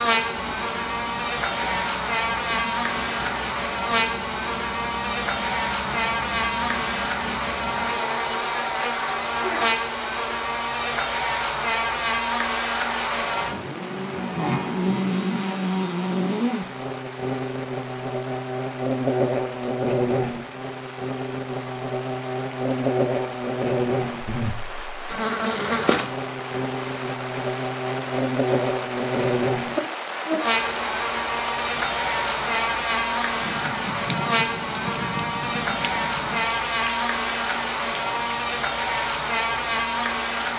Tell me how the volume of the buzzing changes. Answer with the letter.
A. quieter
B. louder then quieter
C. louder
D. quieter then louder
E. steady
E.